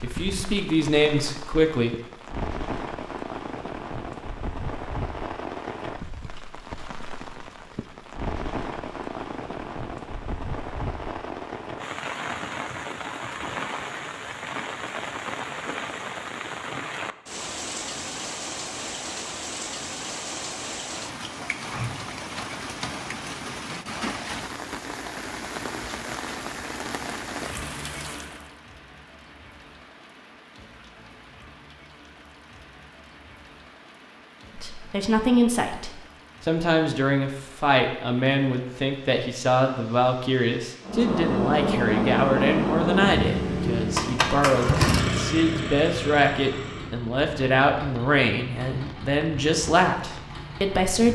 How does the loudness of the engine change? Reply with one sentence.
The volume of the engine goes down.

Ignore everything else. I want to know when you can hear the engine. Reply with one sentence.
You can hear the engine from 40.9 to 51.0 s.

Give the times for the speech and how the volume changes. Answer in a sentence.
The speech can be heard briefly from 0.0 to 1.9 s; and from 34.5 to 51.0 s, at a steady volume.